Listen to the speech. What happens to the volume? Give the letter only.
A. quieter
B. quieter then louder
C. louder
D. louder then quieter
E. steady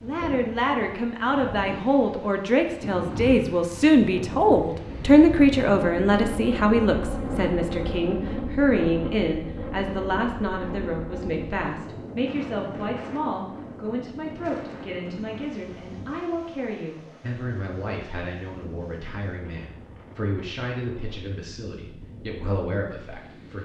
A.